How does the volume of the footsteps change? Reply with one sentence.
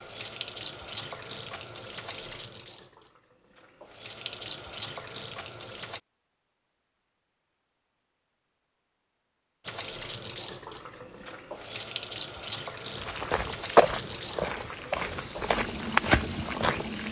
The volume of the footsteps goes down, then up.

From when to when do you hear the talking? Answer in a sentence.
You can't hear the talking here.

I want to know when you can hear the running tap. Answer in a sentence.
You can hear the running tap from 0.0 to 6.0 s and from 9.6 to 17.0 s.